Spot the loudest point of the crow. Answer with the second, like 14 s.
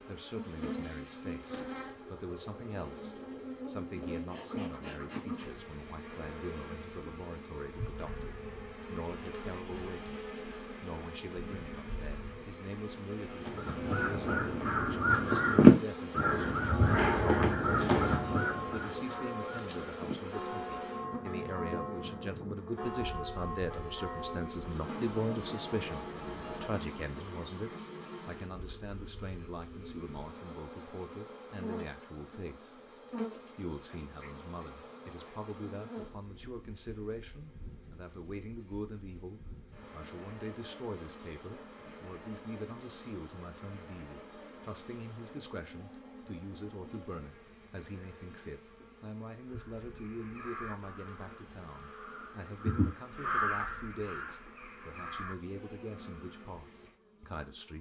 16 s.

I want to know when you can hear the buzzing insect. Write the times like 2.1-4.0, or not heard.
0.0-57.7.